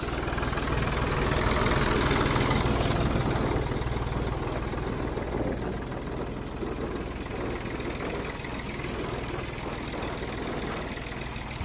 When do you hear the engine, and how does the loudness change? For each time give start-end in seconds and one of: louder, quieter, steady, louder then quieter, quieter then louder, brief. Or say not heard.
0.0-11.6 quieter.